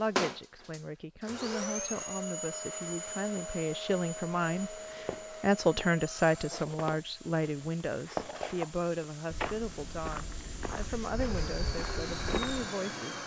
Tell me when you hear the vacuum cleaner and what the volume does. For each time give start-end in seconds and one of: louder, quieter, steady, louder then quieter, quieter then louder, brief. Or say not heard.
0.0-13.2 quieter then louder.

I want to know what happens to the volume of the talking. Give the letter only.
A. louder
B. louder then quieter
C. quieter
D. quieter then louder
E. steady
B.